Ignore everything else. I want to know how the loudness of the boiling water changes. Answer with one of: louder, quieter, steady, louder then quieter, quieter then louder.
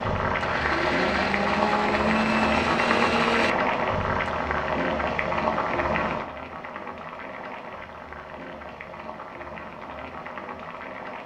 quieter.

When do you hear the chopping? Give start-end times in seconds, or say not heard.
not heard.